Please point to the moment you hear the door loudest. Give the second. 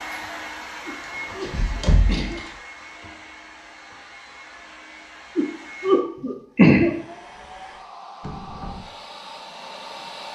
2 s.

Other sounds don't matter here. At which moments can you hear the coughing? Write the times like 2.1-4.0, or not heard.
0.8-2.4, 5.3-6.9.